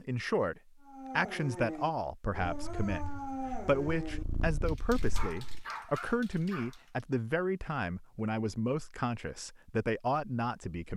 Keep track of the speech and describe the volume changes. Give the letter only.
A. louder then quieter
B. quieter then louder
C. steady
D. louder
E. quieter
C.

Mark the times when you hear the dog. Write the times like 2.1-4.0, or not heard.
0.8-7.0.